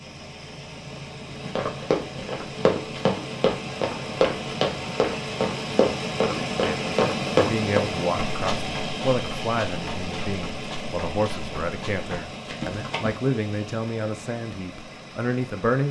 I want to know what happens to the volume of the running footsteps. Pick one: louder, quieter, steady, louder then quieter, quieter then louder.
quieter.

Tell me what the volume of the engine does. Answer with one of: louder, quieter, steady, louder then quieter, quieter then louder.
louder then quieter.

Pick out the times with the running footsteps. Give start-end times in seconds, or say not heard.
1.2-13.2.